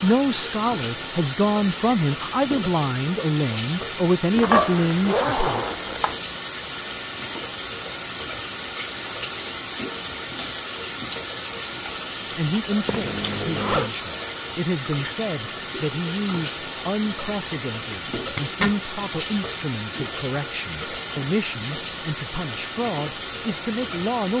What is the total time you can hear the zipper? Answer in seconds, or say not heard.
4 s.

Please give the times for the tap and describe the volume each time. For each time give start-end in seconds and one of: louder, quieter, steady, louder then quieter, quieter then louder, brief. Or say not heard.
0.0-24.3 steady.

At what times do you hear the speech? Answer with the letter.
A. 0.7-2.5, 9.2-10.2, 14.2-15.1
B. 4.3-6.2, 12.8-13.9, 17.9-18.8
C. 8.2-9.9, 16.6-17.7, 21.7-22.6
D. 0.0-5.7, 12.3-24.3
D.